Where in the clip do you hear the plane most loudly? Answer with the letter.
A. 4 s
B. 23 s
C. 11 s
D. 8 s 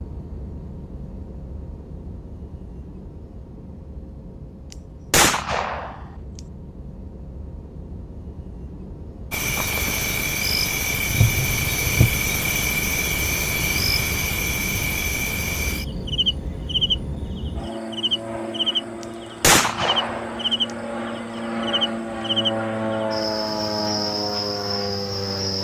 B.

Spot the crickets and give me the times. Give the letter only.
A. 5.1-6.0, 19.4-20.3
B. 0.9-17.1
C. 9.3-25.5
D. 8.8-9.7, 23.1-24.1
C.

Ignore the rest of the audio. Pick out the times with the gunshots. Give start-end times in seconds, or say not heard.
5.1-6.0, 19.4-20.3.